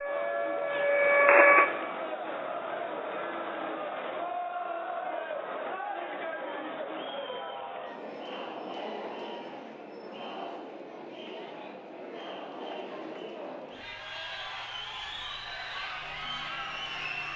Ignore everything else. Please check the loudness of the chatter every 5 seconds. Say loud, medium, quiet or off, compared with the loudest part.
loud, loud, medium, loud.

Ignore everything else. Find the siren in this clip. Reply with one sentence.
The siren can be heard from 0.0 to 1.7 s.